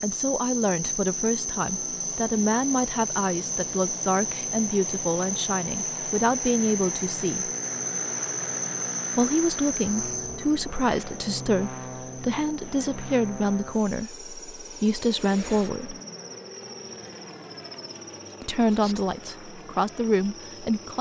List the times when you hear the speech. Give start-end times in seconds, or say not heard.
0.0-7.5, 9.2-15.9, 18.4-20.9.